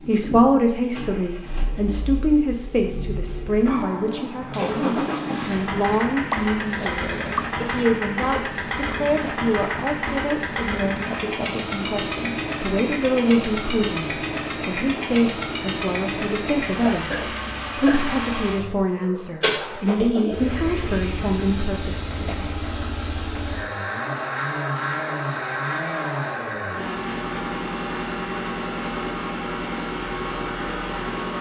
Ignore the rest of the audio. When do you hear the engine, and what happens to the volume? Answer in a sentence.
You can hear the engine from 0.0 to 31.3 s, at a steady volume.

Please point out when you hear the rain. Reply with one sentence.
The rain can't be heard in this clip.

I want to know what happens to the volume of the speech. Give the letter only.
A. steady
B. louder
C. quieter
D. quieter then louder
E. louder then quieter
A.